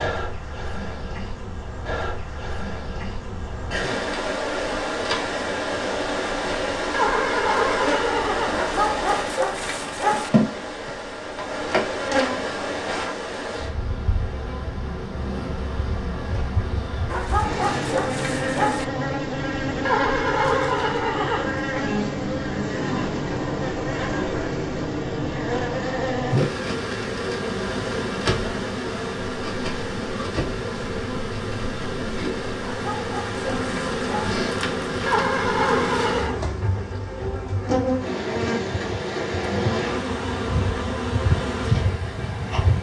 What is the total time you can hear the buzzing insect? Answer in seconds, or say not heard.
43 s.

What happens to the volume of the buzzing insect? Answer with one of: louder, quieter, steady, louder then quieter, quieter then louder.
steady.